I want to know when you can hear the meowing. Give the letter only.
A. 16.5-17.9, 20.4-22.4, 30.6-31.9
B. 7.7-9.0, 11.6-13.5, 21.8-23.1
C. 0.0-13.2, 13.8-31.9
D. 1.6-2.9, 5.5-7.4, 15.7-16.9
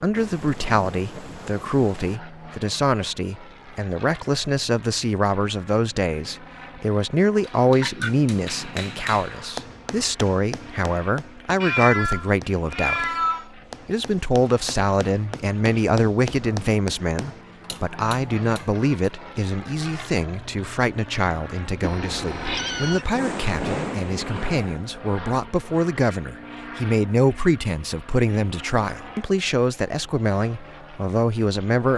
B.